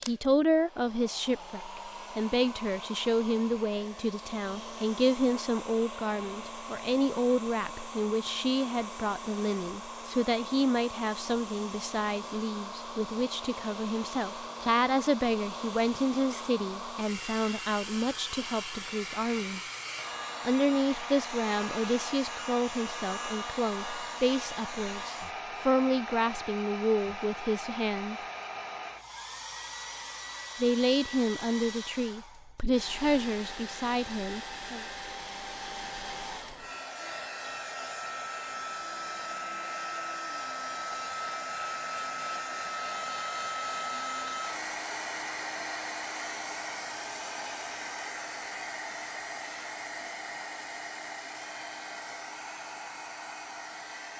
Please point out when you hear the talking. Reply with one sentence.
The talking can be heard from 0.1 to 19.6 s, from 20.4 to 28.2 s and from 30.6 to 34.9 s.